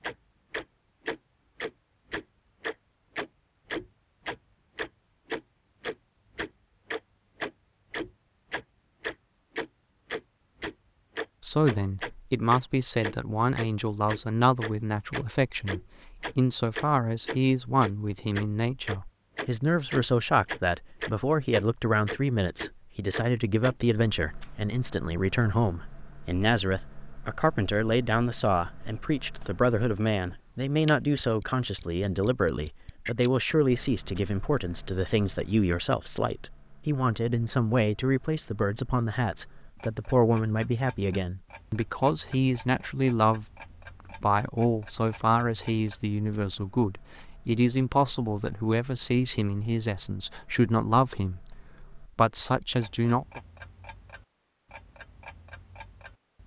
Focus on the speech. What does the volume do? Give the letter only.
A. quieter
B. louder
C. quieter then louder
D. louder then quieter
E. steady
E.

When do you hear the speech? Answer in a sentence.
You can hear the speech from 11.4 to 43.5 s and from 44.2 to 53.4 s.